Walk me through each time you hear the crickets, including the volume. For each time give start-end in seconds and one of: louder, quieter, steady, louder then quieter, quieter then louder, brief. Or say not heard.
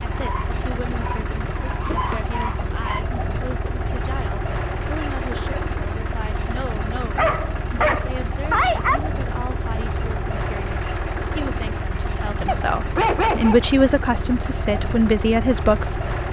not heard.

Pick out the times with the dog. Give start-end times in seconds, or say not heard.
0.1-3.0, 7.2-9.1, 12.4-13.7.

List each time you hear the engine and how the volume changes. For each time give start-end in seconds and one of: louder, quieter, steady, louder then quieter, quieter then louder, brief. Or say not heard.
0.0-16.2 steady.